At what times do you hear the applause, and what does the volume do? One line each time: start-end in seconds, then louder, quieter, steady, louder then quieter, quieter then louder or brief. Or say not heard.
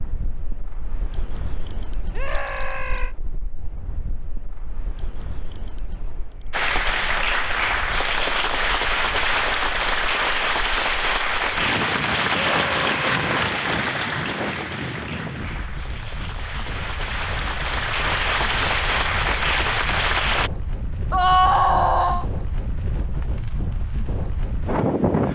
6.5-20.5 quieter then louder.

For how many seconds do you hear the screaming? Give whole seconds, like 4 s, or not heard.
3 s.